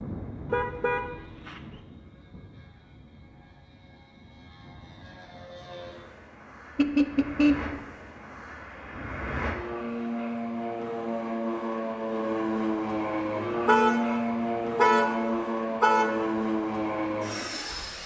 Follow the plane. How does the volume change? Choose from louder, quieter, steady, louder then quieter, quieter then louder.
louder.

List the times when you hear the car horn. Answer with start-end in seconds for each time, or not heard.
0.5-1.8, 6.8-7.8, 13.7-16.4.